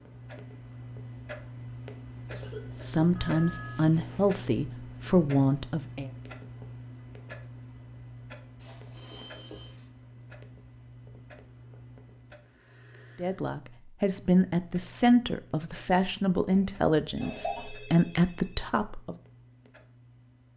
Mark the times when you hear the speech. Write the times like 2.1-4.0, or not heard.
2.8-6.1, 13.2-19.1.